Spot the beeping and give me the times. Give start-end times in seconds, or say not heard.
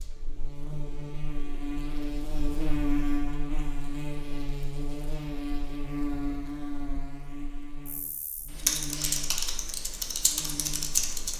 not heard.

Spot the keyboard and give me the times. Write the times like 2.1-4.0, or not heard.
8.5-11.3.